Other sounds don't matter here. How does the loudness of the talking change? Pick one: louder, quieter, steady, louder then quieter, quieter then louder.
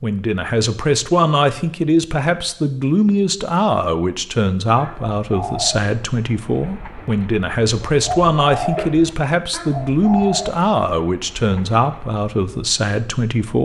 steady.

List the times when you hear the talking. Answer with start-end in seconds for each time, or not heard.
0.0-13.6.